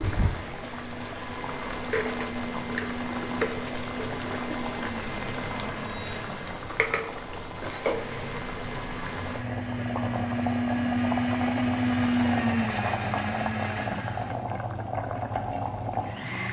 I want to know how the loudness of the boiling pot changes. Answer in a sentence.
The loudness of the boiling pot stays about the same.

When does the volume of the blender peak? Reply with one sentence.
The volume of the blender peaks at 12 seconds.